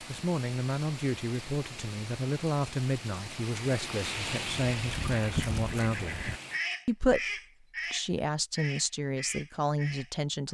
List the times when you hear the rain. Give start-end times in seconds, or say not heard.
0.0-6.7.